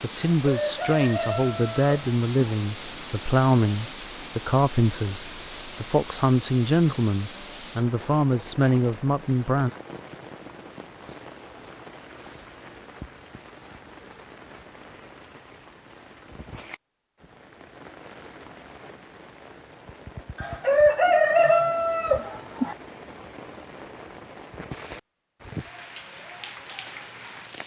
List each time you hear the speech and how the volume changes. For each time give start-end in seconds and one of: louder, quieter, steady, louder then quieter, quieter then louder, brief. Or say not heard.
0.0-9.7 steady.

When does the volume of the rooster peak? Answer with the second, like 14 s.
21 s.